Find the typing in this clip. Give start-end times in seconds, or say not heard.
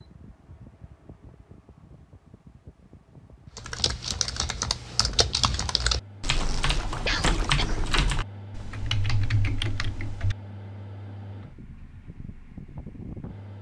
3.5-10.3.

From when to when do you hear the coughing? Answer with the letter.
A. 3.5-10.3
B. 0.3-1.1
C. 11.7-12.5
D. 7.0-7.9
D.